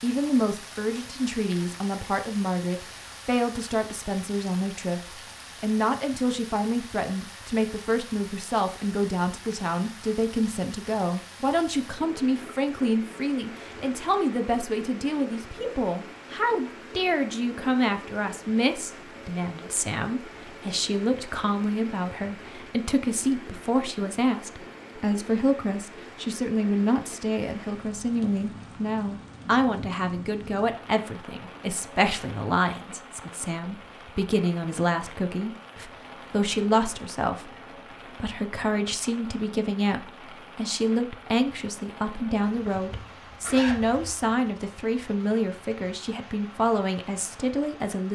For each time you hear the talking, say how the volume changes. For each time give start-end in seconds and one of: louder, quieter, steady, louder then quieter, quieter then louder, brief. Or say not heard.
0.0-48.0 steady.